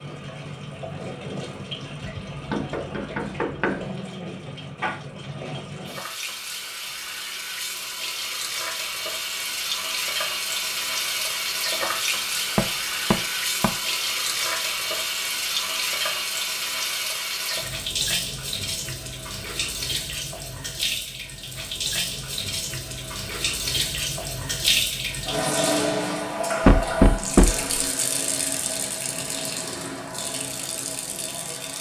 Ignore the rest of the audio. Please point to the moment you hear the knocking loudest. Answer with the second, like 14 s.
27 s.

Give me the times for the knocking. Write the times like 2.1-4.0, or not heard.
2.0-3.9, 12.6-13.8, 26.6-27.7.